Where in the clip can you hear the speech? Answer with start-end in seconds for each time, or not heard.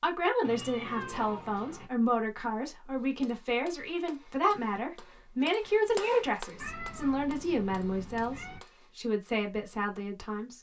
0.0-10.5.